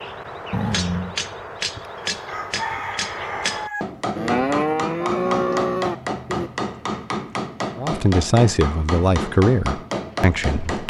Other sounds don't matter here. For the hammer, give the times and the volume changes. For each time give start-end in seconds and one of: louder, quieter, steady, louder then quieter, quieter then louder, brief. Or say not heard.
0.0-10.8 steady.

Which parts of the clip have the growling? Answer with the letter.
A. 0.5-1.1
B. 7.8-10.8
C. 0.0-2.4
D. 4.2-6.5
A.